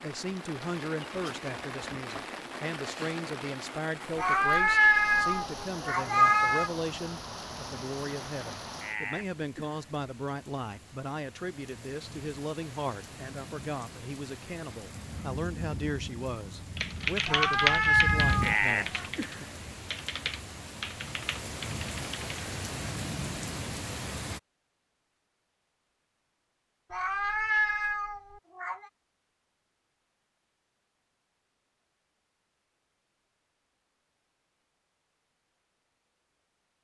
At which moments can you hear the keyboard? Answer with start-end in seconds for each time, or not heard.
16.8-22.4.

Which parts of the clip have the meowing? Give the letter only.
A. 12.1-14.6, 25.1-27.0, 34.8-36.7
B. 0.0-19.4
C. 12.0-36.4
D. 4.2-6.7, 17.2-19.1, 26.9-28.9
D.